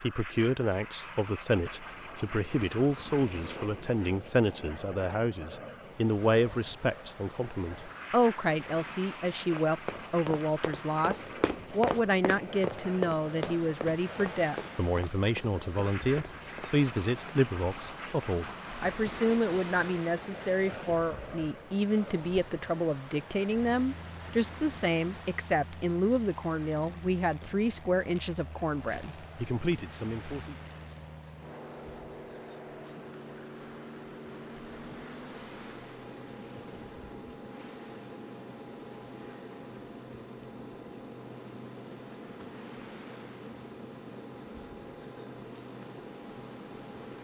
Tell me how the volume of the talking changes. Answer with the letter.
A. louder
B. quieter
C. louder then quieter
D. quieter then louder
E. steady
E.